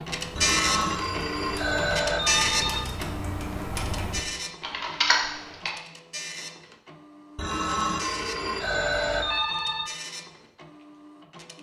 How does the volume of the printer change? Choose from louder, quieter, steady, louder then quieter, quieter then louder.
quieter.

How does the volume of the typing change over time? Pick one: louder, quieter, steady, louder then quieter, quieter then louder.
louder.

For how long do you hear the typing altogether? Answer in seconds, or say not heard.
6 s.